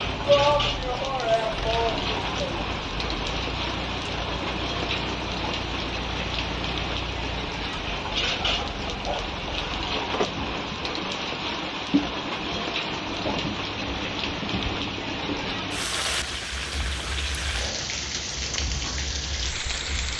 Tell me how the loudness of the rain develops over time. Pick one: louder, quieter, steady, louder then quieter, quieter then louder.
steady.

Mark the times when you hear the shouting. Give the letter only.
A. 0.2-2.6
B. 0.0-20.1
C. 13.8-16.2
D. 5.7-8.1
A.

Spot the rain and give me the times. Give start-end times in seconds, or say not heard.
0.0-20.1.